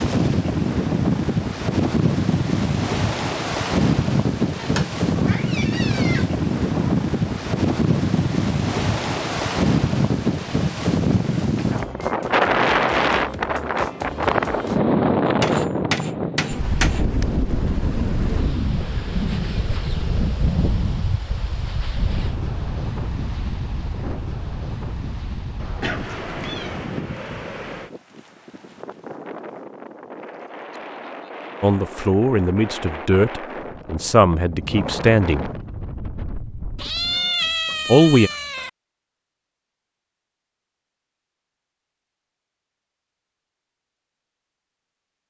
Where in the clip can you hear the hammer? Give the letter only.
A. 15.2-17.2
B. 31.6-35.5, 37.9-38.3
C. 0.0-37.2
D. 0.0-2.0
A.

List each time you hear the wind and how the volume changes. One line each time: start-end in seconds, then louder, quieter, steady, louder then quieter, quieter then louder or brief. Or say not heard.
0.0-37.2 quieter.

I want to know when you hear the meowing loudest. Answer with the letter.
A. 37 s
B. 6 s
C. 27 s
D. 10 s
A.